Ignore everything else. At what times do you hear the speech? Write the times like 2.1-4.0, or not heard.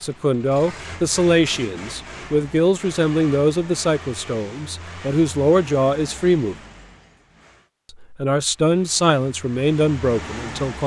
0.0-6.5, 7.9-10.8.